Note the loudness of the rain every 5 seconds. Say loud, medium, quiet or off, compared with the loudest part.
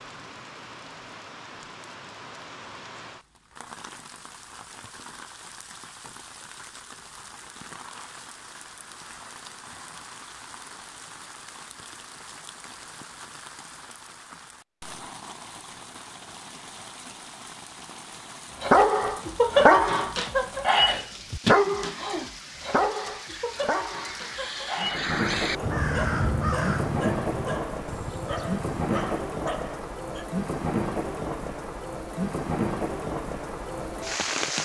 quiet, quiet, quiet, quiet, quiet, loud, loud.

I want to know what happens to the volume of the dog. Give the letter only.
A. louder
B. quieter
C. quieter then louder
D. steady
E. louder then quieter
B.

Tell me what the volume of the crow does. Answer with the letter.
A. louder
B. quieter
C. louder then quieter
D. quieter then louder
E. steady
C.